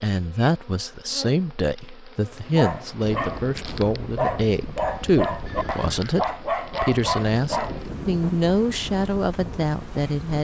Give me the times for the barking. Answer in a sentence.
You can hear the barking from 2.3 to 7.8 s.